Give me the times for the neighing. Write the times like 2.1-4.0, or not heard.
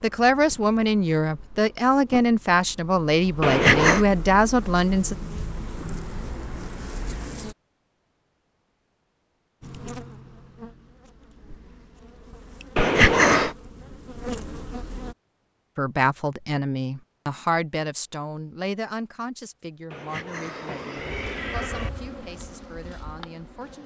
3.4-4.0, 12.8-13.6, 19.9-21.9.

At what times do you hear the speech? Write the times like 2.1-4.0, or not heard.
0.0-5.2, 15.8-23.8.